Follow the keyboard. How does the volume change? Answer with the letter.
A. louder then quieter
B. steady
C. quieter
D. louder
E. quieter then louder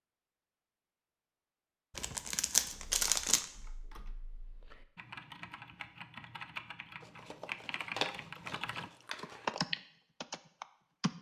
D.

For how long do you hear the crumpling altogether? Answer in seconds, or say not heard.
4 s.